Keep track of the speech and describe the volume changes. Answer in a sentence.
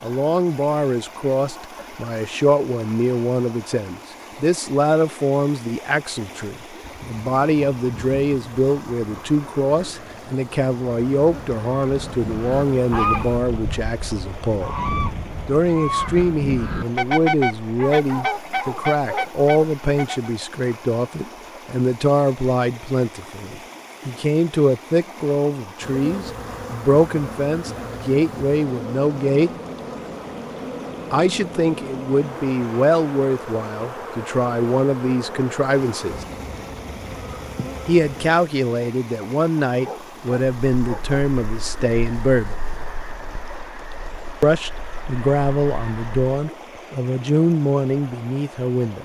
The volume of the speech stays about the same.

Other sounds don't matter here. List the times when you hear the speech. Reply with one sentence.
You can hear the speech from 0.0 to 14.8 s, from 15.4 to 29.5 s, from 31.1 to 36.2 s, from 37.9 to 42.6 s and from 44.4 to 49.0 s.